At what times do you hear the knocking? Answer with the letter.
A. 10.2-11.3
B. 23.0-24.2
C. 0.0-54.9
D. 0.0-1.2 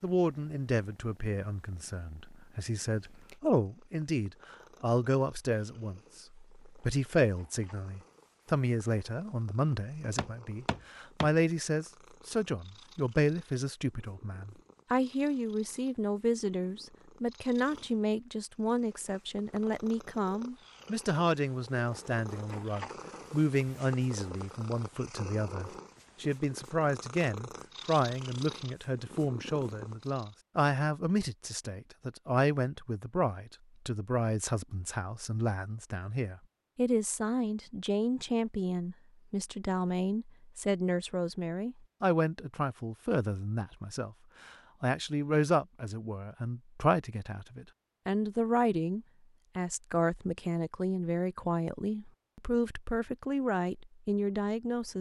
A.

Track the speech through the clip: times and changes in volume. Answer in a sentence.
You can hear the speech from 0.0 to 54.9 s, at a steady volume.